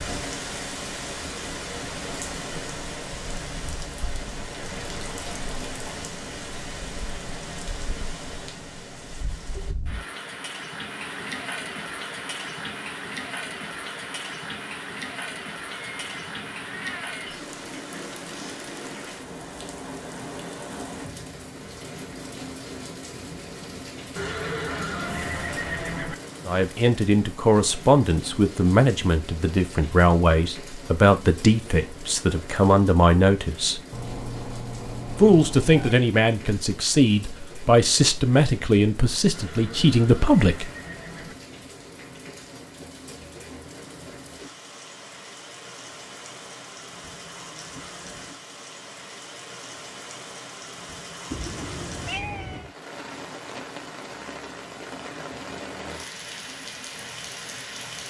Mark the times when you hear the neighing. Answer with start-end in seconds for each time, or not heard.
24.1-26.1, 39.3-41.4.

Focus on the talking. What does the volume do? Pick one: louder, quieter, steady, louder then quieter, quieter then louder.
steady.